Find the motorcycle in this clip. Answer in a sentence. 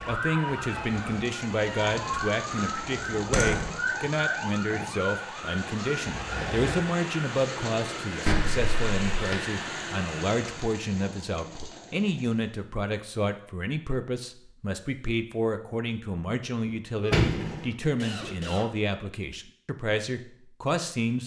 The motorcycle can't be heard in this clip.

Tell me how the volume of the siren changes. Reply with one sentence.
The volume of the siren stays about the same.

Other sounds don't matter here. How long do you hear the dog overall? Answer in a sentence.
The dog can't be heard in this clip.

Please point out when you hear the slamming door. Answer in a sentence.
The slamming door can be heard from 3.3 to 3.8 s, from 8.2 to 9.3 s and from 16.6 to 17.7 s.